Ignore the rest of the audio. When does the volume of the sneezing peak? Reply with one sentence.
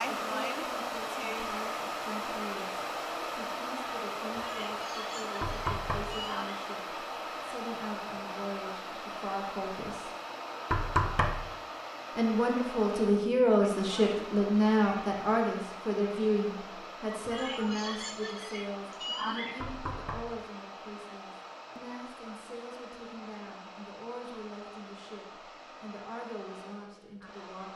The volume of the sneezing peaks at 19 seconds.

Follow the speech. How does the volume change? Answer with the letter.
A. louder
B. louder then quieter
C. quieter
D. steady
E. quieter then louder
B.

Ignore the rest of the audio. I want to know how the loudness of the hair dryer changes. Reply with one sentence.
The volume of the hair dryer goes down.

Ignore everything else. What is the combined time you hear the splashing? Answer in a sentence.
You can't hear the splashing here.